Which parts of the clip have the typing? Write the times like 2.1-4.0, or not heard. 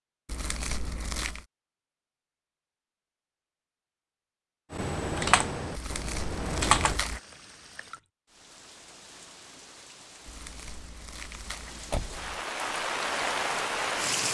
4.7-7.0.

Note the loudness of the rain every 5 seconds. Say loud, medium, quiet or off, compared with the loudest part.
off, quiet, loud.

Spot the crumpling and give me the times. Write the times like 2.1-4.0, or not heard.
0.2-1.4, 5.7-7.2, 10.2-12.4.